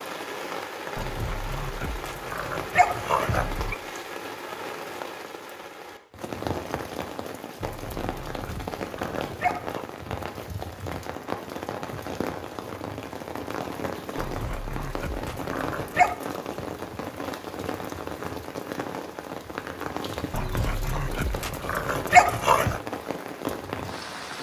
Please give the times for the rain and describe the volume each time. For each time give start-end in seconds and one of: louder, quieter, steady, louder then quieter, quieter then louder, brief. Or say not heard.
0.0-24.3 steady.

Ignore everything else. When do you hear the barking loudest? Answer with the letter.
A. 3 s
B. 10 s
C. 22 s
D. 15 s
C.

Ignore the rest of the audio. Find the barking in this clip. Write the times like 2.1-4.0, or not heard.
0.9-3.8, 7.6-9.8, 14.2-16.1, 20.3-22.8.